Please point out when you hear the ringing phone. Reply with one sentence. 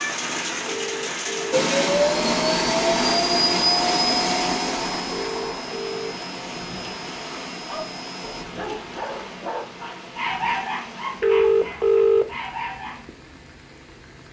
The ringing phone can be heard from 0.7 to 1.6 s, from 5.1 to 6.2 s and from 11.2 to 12.3 s.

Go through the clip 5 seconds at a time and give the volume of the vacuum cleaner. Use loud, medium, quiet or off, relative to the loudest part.
loud, quiet, off.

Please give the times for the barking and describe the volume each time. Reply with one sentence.
The barking can be heard from 7.7 to 13.1 s, getting louder then quieter.